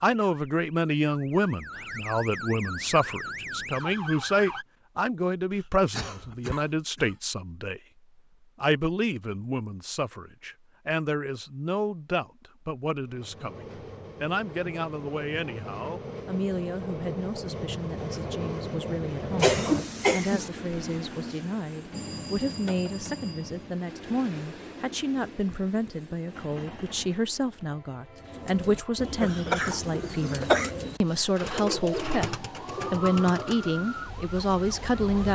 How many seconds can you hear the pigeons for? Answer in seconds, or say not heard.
6 s.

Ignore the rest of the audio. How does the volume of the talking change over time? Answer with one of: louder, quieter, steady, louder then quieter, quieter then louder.
quieter then louder.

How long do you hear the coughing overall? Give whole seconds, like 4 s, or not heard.
4 s.